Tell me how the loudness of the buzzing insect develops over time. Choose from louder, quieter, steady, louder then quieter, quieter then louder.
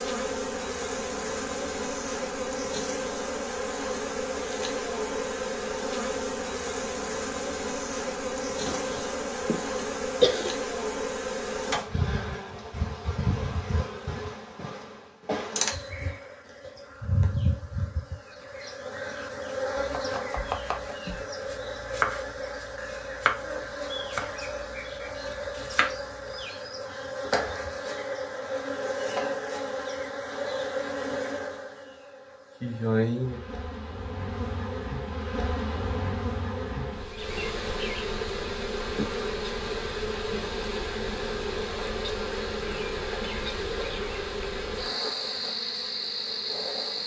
steady.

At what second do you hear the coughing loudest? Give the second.
10 s.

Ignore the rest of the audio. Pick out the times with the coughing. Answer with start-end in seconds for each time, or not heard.
8.7-10.5.